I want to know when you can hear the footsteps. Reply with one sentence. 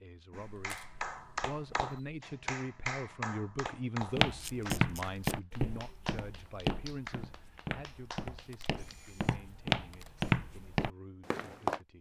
You can hear the footsteps from 4.2 to 11.8 s.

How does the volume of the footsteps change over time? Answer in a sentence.
The loudness of the footsteps goes down, then up.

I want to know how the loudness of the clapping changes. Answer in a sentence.
The volume of the clapping goes down.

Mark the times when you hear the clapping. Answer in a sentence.
The clapping can be heard from 0.3 to 8.9 s.